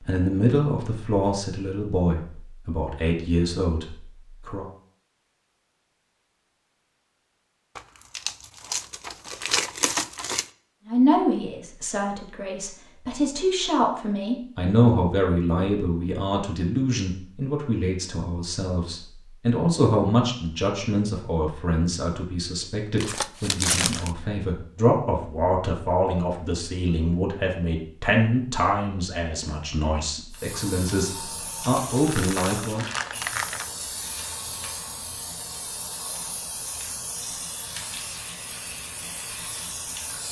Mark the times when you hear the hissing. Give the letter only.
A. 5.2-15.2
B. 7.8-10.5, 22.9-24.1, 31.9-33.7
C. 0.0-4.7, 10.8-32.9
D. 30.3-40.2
D.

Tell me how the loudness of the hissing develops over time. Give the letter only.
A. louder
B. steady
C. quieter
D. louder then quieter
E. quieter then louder
B.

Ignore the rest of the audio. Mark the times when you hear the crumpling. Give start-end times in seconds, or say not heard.
7.8-10.5, 22.9-24.1, 31.9-33.7.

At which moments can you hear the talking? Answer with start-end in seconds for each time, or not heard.
0.0-4.7, 10.8-32.9.